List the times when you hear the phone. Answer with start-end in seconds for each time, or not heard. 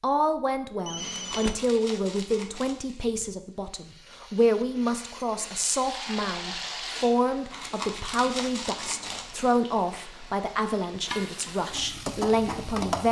0.8-1.6.